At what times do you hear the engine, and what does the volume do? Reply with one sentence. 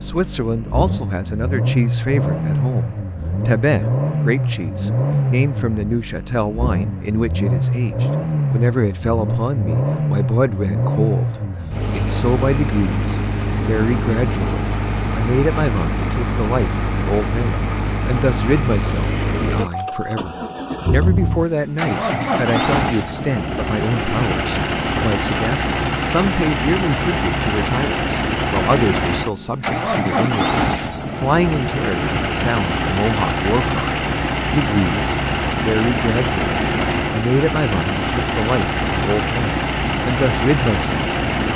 You can hear the engine from 0.0 to 41.5 s, at a steady volume.